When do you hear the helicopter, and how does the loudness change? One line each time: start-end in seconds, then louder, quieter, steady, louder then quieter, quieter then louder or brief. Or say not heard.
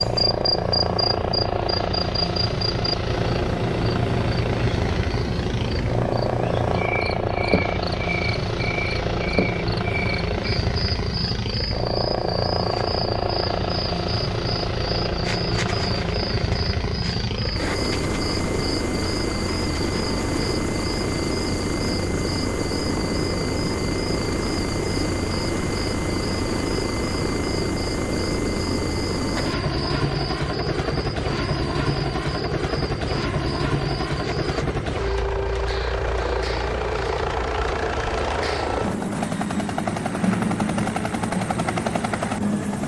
0.0-42.8 steady.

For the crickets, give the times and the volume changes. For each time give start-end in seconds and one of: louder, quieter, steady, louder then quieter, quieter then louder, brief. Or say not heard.
0.0-34.6 quieter.